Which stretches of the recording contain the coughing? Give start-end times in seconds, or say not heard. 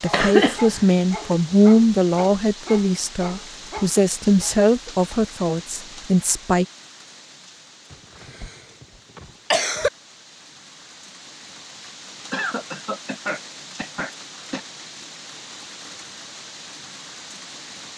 0.1-0.8, 7.9-9.9, 12.3-14.6.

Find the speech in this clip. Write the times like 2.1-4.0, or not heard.
0.0-6.7.